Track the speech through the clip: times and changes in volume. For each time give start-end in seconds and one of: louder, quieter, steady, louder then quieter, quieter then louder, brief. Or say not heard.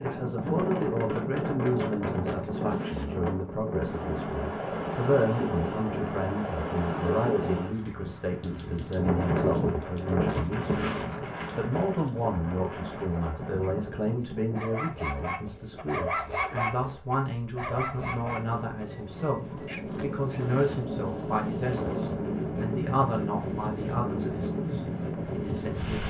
0.0-26.0 steady.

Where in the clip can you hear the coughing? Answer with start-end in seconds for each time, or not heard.
not heard.